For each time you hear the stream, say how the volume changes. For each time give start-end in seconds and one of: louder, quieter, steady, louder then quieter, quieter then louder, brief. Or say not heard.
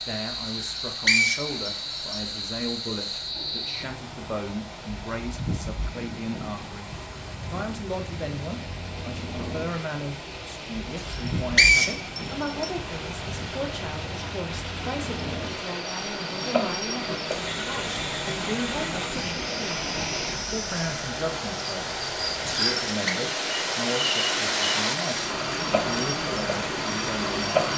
0.0-27.7 louder.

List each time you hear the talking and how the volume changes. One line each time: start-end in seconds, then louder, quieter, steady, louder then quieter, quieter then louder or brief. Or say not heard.
0.0-27.6 steady.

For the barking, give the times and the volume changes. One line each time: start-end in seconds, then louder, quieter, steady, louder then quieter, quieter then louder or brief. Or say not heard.
not heard.